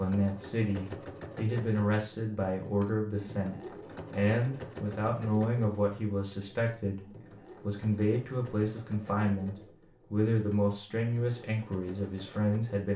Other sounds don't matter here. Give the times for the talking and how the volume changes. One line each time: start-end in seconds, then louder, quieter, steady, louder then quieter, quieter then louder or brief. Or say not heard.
0.0-12.9 steady.